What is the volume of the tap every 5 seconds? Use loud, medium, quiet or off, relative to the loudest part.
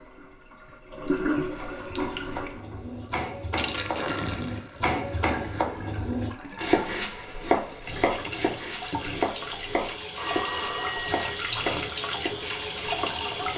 loud, medium, loud.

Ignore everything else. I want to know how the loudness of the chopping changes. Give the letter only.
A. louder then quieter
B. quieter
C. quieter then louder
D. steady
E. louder
A.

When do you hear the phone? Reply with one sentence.
The phone can be heard from 10.2 to 11.2 s.